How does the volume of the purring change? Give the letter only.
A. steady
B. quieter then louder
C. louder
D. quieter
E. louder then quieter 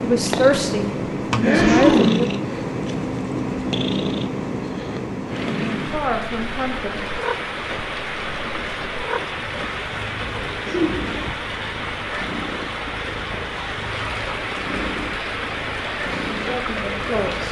D.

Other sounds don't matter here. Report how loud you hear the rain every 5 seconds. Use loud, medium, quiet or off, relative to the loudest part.
off, loud, loud, loud.